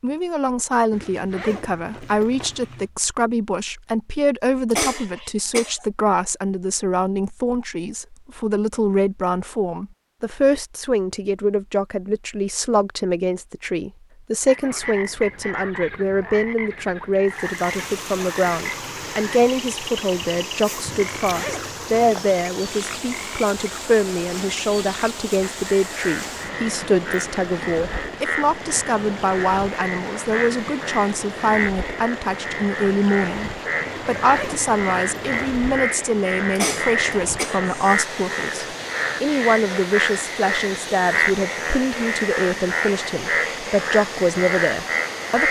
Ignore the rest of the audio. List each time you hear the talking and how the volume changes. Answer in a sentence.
The talking can be heard from 0.0 to 45.4 s, at a steady volume.